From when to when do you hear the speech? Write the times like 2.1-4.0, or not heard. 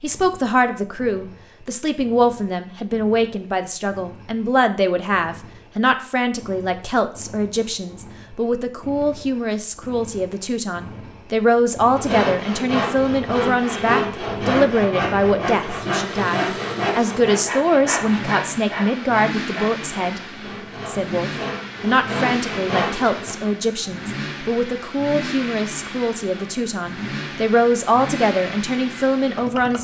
0.0-20.2, 20.9-29.7.